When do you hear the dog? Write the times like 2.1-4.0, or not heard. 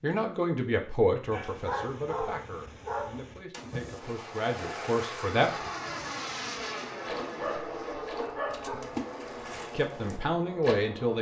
1.3-3.5, 7.3-8.9.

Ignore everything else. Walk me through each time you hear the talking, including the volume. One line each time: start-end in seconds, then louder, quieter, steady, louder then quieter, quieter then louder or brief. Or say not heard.
0.0-5.7 quieter then louder
9.7-11.1 brief.